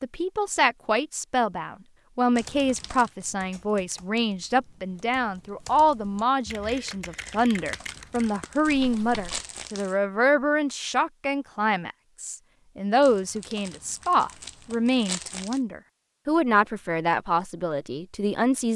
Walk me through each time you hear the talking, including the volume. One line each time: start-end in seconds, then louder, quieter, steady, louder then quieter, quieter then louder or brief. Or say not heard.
0.0-18.7 steady.